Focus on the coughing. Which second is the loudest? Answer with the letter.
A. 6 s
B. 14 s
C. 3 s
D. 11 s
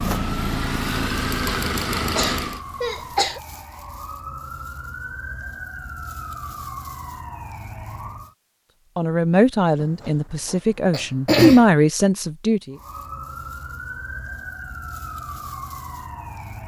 D.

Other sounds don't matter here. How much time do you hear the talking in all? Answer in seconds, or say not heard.
4 s.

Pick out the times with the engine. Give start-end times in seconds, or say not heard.
0.0-2.6.